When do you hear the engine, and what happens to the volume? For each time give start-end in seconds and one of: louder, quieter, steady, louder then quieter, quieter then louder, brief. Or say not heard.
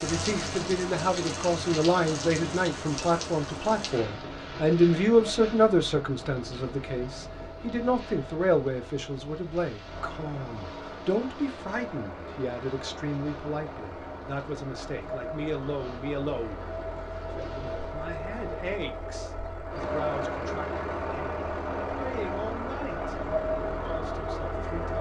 0.0-24.9 louder.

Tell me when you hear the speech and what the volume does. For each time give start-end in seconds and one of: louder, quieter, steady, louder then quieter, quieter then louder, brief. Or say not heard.
0.0-24.9 quieter.